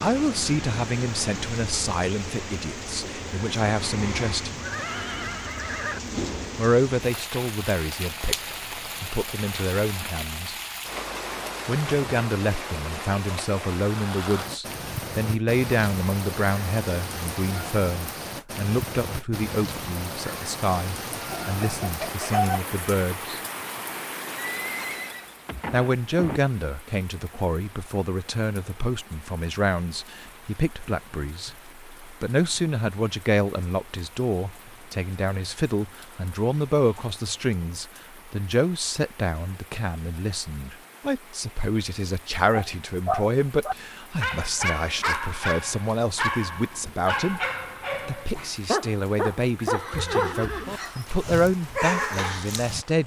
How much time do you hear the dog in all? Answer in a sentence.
The dog can be heard for 10 seconds in total.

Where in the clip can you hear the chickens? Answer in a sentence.
The chickens can be heard from 21.1 to 22.6 s.